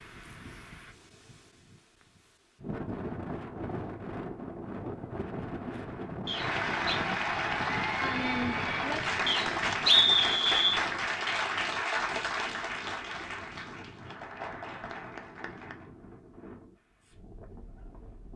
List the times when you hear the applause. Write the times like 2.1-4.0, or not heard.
6.2-15.9.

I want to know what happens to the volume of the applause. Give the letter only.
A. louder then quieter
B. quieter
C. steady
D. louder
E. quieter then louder
B.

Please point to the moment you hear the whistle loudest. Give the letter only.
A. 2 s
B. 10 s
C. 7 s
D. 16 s
B.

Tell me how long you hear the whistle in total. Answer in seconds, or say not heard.
2 s.